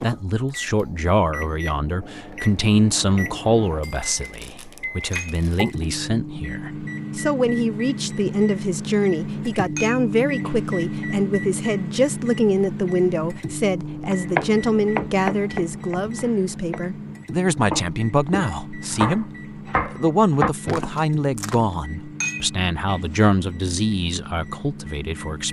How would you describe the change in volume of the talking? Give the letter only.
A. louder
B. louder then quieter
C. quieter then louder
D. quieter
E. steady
E.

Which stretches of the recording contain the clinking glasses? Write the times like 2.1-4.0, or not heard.
5.1-6.0, 9.8-10.5, 22.2-23.0.